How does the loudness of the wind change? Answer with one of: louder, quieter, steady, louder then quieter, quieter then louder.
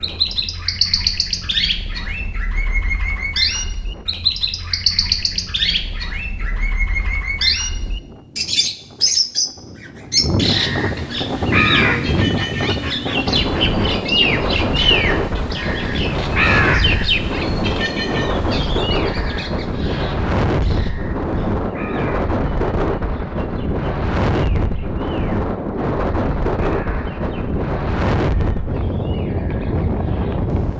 louder.